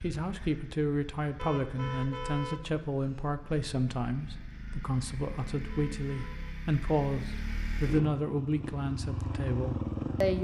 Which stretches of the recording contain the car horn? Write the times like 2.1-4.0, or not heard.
1.4-3.4, 5.7-6.5.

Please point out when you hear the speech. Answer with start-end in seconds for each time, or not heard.
0.0-10.4.